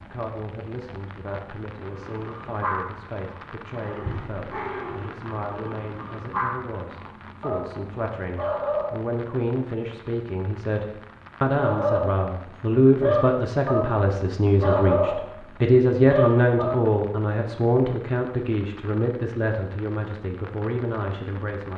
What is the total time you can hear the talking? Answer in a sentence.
The talking can be heard for 22 seconds in total.